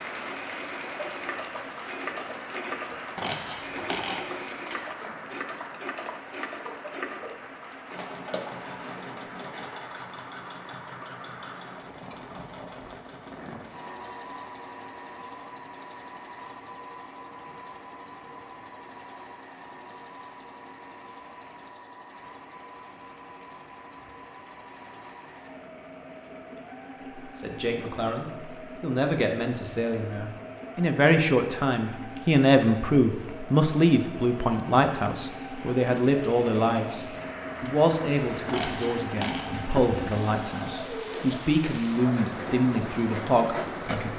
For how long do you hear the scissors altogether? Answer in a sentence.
The scissors can be heard for 3 seconds in total.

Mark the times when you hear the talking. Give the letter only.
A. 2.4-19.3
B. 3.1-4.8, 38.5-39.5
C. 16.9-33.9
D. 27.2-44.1
D.